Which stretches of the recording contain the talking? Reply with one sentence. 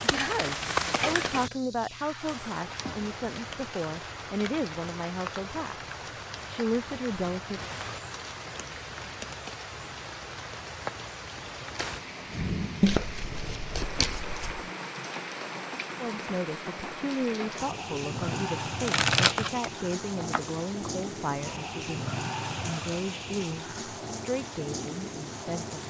You can hear the talking from 0.0 to 7.7 s and from 15.9 to 25.8 s.